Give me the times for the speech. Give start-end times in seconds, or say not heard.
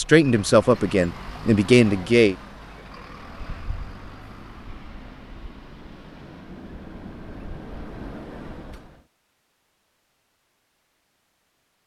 0.0-2.4.